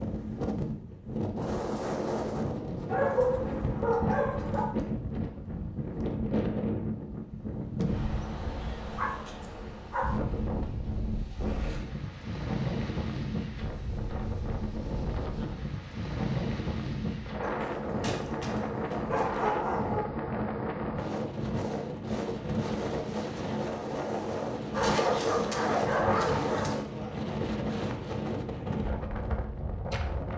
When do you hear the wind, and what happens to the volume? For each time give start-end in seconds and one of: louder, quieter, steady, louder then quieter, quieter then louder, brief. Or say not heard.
0.0-30.3 steady.